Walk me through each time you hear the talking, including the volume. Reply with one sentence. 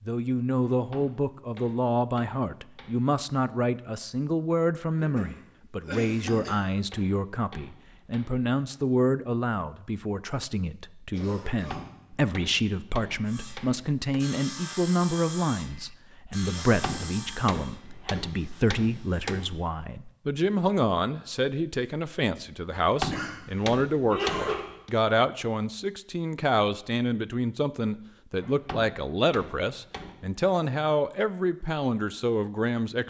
You can hear the talking from 0.0 to 33.0 s, at a steady volume.